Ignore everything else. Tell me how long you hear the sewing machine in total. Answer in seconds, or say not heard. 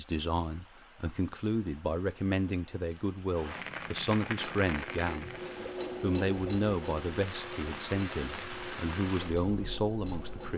6 s.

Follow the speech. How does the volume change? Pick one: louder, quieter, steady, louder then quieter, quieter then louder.
steady.